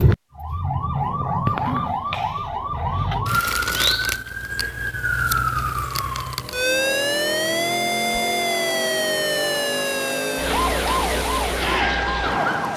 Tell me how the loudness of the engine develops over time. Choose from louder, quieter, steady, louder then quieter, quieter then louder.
steady.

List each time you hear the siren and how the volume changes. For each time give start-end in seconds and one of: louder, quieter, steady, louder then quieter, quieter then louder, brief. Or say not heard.
0.0-12.7 steady.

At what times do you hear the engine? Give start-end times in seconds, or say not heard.
6.3-12.7.